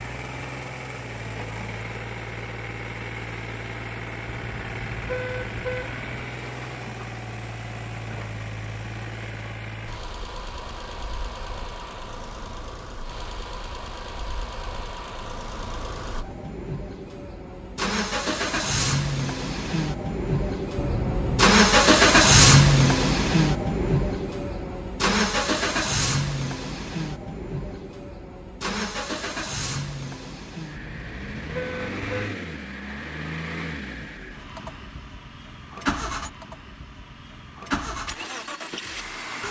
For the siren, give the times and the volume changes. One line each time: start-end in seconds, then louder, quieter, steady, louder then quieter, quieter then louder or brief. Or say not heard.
not heard.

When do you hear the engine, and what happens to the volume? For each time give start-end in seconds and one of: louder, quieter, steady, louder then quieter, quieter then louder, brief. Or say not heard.
0.0-39.4 louder then quieter.